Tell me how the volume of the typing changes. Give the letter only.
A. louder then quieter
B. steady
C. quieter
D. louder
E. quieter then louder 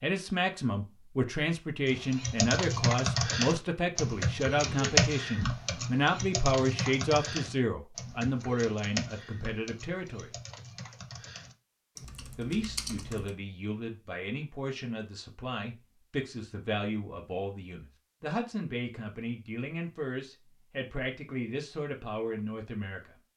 C.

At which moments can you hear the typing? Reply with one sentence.
The typing can be heard from 1.9 to 13.3 s.